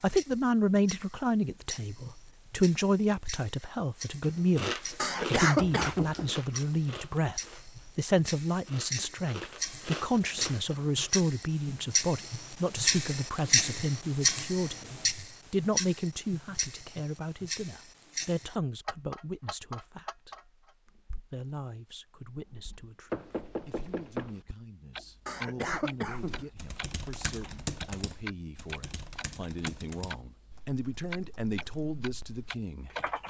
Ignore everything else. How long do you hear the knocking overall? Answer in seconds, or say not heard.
2 s.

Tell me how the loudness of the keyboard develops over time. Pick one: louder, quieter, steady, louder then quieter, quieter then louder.
quieter then louder.